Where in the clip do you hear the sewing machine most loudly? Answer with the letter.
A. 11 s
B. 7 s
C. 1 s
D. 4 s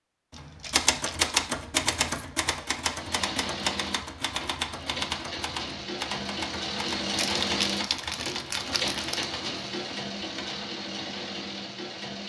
B.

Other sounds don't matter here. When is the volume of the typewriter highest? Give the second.
1 s.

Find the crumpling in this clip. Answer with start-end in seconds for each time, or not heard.
0.3-1.3, 7.0-9.3.